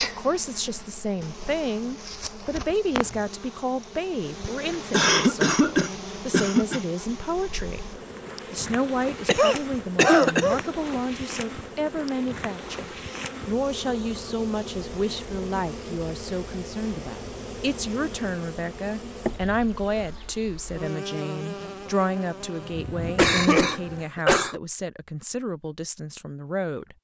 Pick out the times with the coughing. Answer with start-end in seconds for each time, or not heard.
4.9-6.8, 9.2-10.7, 23.1-24.6.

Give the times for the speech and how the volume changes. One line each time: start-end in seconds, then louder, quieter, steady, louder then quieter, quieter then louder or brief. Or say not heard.
0.0-26.9 steady.